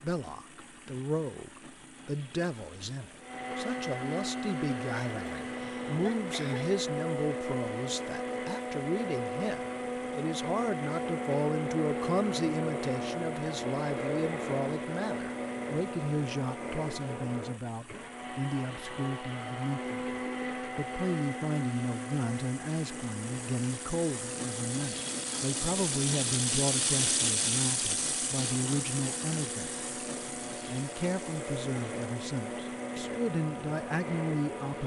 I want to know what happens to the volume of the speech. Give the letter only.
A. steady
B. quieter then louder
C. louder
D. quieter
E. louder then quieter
A.